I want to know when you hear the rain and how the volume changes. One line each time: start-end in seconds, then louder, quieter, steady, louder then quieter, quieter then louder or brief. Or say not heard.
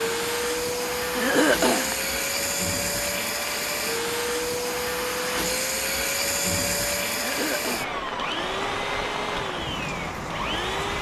0.0-10.9 louder.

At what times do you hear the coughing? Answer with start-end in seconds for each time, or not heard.
1.1-1.9, 7.2-8.0.